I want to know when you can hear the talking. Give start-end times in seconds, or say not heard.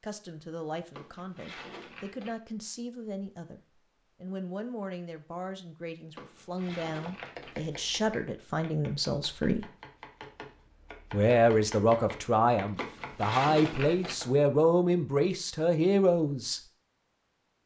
0.0-3.6, 4.2-9.7, 11.1-16.6.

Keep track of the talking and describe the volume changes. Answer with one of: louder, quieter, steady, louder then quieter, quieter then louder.
louder.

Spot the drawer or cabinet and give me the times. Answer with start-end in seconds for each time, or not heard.
0.9-2.4, 6.2-7.6, 12.8-14.2.